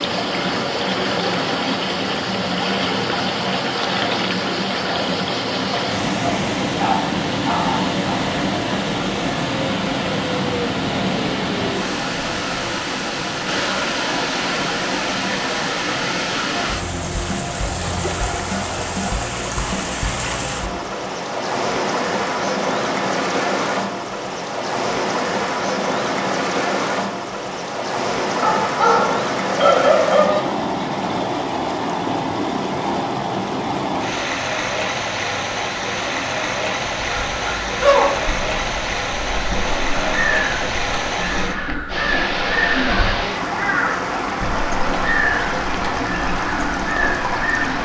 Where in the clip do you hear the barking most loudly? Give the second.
30 s.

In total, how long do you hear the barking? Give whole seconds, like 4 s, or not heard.
4 s.